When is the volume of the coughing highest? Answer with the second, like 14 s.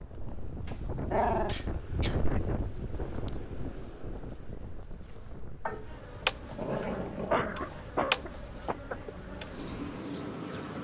7 s.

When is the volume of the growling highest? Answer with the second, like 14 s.
1 s.